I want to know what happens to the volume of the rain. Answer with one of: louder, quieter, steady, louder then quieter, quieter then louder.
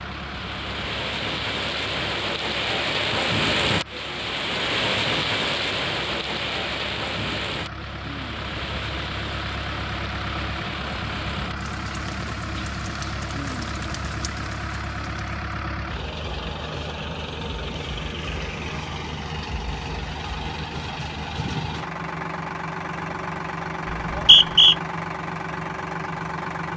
quieter.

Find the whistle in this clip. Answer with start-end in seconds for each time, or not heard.
23.9-24.8.